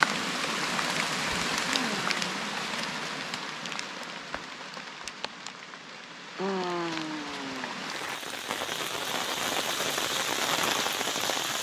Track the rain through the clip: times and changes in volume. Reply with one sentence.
You can hear the rain from 0.0 to 11.5 s, getting quieter then louder.